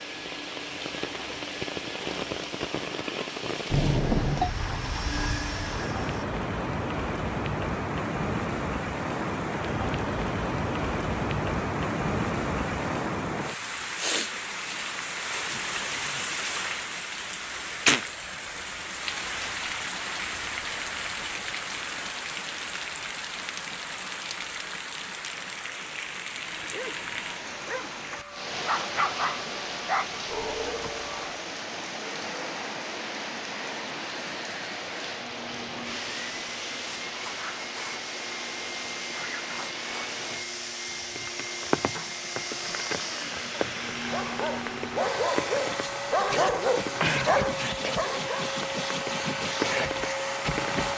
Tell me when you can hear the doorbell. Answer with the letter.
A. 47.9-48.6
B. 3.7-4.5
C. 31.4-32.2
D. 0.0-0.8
B.